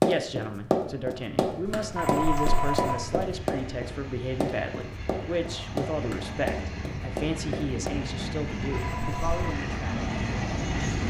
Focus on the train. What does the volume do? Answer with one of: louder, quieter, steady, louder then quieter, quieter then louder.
louder.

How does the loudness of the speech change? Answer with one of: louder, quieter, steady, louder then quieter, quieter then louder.
steady.